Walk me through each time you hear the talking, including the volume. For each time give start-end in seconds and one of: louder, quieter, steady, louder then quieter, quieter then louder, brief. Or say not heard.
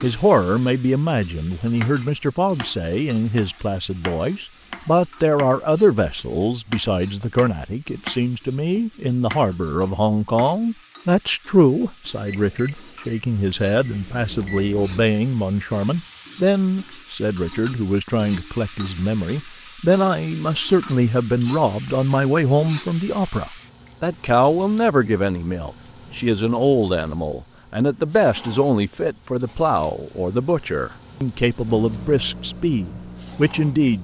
0.0-33.9 steady.